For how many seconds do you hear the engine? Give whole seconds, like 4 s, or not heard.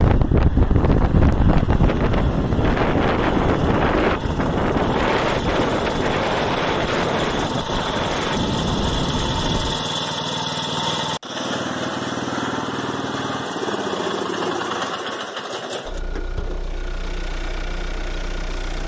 19 s.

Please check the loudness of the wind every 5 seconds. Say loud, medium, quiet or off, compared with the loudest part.
loud, loud, off, off.